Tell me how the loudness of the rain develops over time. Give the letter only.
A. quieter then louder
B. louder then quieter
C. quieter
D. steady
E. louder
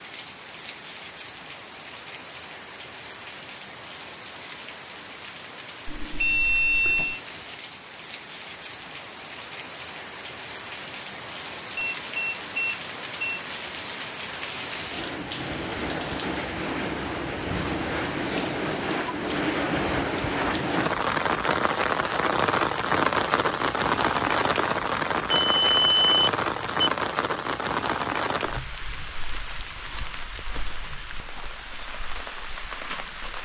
B.